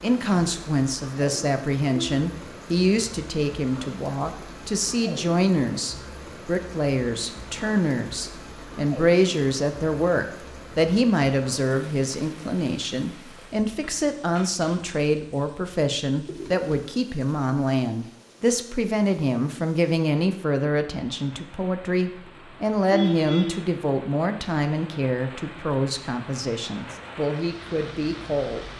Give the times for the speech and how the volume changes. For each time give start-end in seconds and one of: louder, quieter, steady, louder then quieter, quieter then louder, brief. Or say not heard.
0.0-28.6 steady.